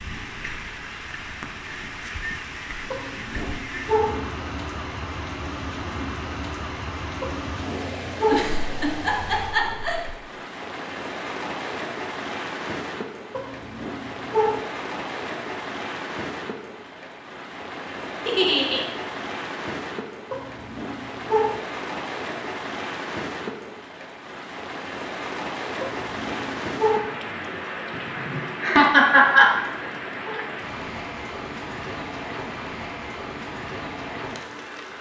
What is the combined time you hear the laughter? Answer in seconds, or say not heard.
4 s.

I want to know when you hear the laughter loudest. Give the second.
29 s.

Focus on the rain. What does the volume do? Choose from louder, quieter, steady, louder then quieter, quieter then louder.
steady.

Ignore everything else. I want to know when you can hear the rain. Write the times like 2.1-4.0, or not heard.
0.0-34.9.